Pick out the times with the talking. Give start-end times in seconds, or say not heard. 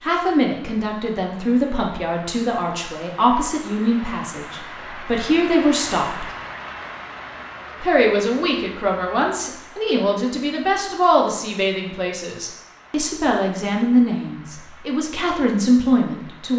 0.0-6.2, 7.8-16.5.